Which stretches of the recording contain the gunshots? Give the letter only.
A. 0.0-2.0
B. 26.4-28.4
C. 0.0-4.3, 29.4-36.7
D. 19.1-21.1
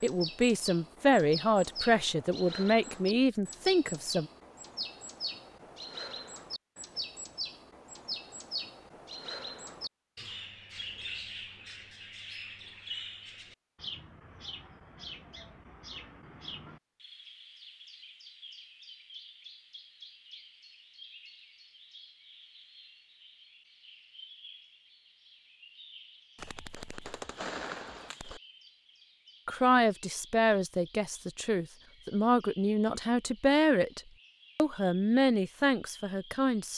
B.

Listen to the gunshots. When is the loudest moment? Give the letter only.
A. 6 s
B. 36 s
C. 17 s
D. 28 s
D.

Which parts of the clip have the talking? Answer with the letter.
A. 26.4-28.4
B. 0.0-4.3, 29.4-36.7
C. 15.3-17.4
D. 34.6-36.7
B.